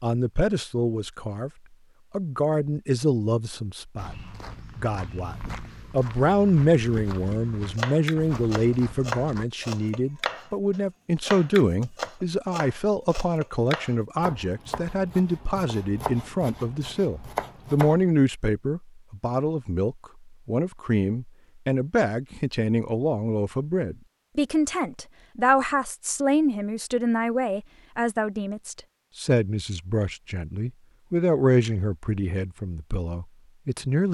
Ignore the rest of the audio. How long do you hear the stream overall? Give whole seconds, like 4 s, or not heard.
not heard.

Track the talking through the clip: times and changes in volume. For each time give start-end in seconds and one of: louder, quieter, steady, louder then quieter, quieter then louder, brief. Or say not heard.
0.0-1.5 brief
2.1-4.2 brief
4.8-34.0 steady.